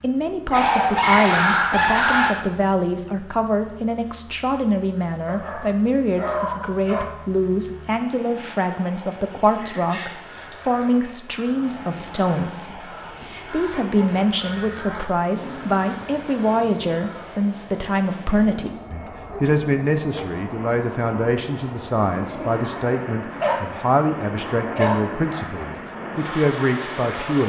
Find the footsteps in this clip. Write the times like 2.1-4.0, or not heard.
not heard.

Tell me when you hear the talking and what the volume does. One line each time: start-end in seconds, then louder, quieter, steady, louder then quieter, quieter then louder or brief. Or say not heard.
0.0-27.4 steady.